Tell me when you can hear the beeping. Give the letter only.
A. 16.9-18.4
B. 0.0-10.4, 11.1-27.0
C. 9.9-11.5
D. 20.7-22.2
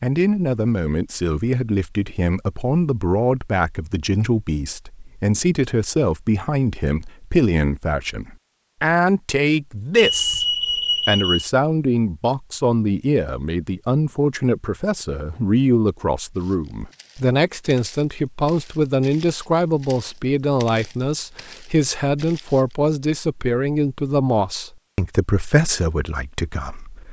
C.